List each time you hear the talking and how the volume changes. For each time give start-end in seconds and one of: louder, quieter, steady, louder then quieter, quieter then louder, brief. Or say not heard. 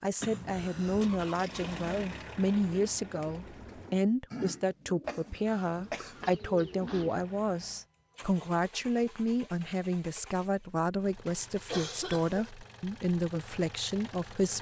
0.0-14.5 steady.